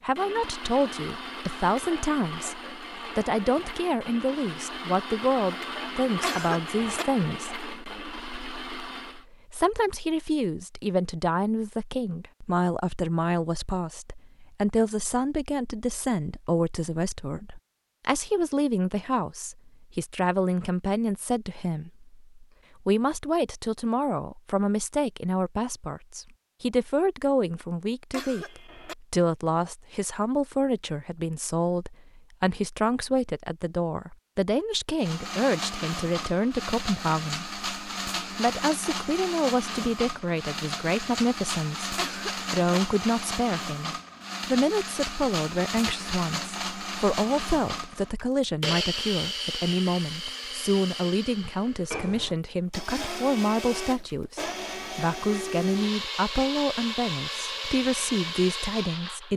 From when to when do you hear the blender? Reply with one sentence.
You can hear the blender from 0.1 to 9.2 s and from 35.0 to 59.3 s.